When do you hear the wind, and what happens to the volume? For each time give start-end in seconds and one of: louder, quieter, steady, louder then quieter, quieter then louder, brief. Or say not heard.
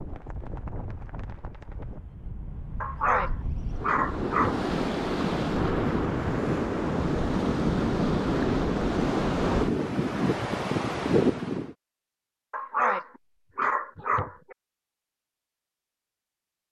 0.0-11.8 louder.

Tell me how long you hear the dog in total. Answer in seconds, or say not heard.
4 s.